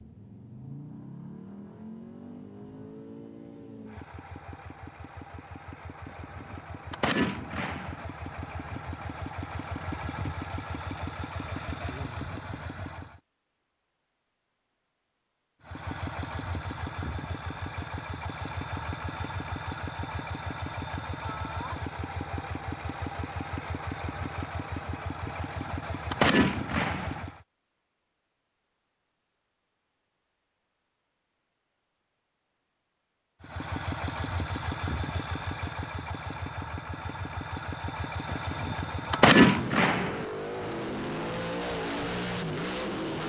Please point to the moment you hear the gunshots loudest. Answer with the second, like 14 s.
39 s.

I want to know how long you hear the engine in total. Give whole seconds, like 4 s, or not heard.
35 s.